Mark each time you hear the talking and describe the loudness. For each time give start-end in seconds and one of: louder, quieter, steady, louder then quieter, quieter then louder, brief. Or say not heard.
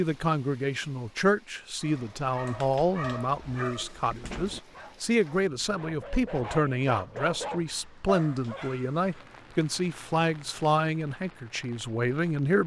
0.0-12.6 steady.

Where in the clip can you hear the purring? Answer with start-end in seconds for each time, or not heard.
not heard.